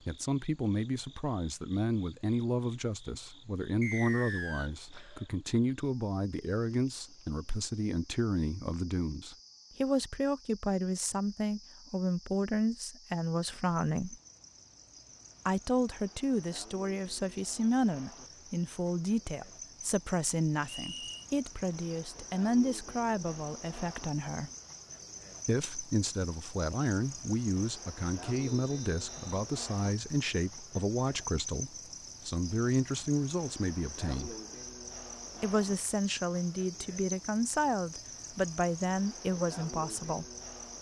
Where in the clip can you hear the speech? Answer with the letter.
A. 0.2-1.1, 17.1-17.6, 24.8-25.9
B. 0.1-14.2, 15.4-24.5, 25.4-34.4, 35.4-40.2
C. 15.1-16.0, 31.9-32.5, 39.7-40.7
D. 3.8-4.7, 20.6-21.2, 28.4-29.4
B.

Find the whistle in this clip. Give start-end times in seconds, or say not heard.
3.8-4.7, 20.6-21.2, 28.4-29.4.